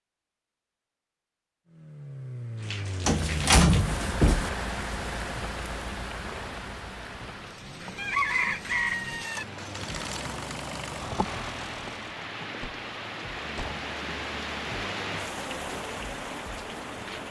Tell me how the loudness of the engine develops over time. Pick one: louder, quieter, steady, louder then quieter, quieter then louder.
quieter then louder.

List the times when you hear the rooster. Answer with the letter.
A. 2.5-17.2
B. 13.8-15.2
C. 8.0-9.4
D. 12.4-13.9
C.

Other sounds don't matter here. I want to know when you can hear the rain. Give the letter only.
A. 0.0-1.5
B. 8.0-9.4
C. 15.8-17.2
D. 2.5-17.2
D.